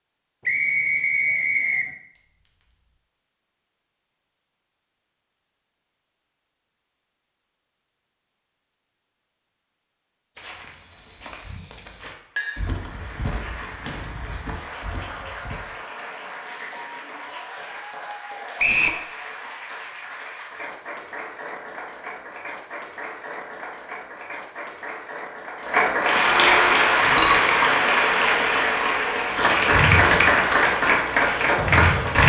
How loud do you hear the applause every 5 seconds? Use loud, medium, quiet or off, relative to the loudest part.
off, off, quiet, quiet, quiet, loud, loud.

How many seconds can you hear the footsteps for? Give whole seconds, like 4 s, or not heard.
5 s.